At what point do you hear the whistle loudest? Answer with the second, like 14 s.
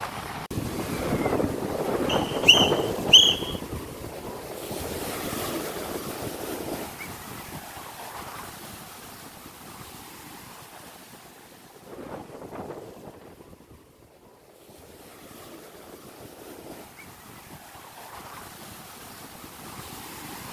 3 s.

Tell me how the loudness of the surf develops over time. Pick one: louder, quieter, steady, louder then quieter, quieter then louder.
quieter.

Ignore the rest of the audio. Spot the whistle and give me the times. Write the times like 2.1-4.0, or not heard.
2.0-3.5.